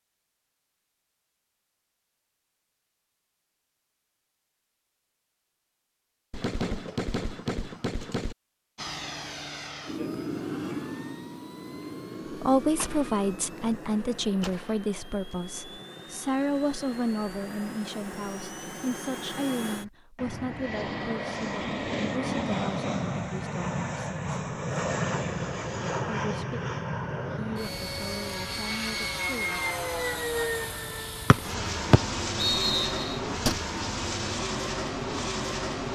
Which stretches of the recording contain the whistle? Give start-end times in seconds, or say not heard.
31.3-33.1.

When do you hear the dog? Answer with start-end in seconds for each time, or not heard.
not heard.